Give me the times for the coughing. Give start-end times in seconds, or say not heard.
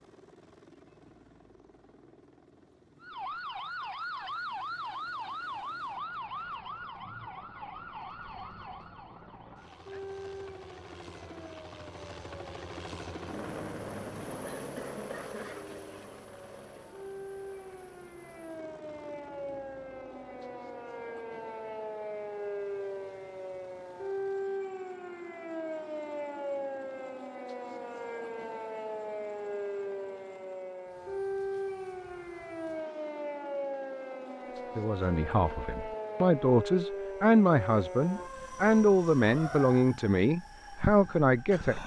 14.4-15.7.